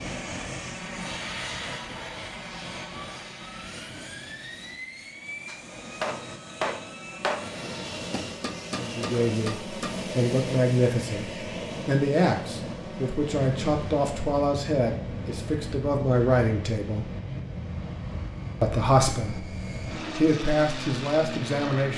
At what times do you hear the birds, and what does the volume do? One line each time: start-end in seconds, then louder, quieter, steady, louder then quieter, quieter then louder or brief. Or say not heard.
not heard.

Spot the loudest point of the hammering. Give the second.
7 s.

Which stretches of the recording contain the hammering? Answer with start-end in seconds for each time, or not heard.
5.5-9.9.